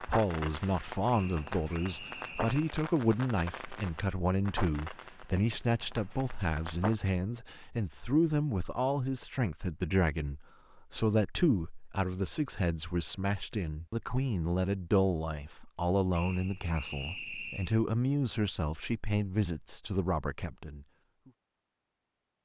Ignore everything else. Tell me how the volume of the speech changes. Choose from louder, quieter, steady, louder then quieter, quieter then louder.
steady.